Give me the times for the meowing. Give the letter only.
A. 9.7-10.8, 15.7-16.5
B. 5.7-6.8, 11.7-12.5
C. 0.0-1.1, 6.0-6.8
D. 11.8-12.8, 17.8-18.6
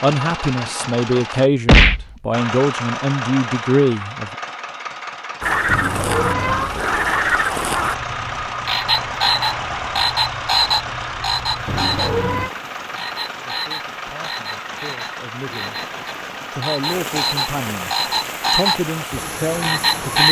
B.